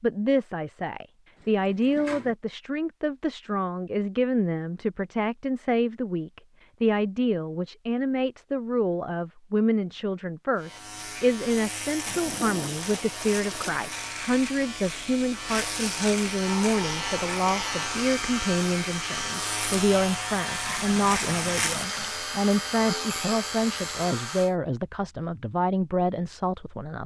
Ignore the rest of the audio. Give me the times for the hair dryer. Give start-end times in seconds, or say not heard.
16.4-24.5.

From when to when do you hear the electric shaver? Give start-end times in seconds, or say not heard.
10.6-24.6.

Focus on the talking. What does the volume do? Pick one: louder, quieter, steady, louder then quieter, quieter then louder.
steady.